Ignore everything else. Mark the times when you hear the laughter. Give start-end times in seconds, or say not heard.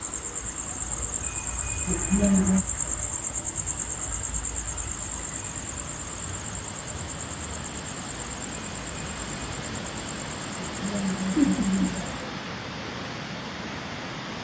1.9-2.6, 10.6-12.2.